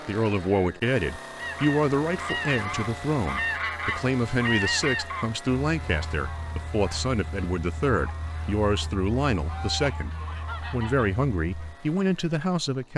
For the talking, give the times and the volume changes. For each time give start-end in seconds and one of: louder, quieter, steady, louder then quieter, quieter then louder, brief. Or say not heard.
0.1-12.9 steady.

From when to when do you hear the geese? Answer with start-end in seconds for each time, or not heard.
1.4-11.8.